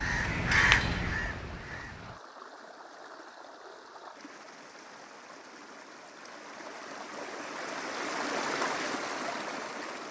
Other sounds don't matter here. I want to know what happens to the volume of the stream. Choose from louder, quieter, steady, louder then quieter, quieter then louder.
louder.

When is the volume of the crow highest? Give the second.
1 s.